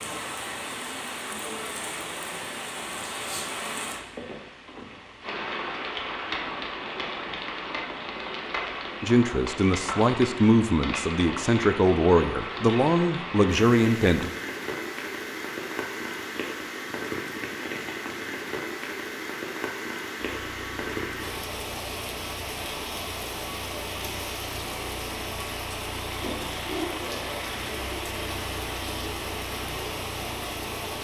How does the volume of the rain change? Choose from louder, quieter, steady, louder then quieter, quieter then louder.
steady.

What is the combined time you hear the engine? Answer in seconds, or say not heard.
11 s.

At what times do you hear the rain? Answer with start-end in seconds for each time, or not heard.
0.0-31.0.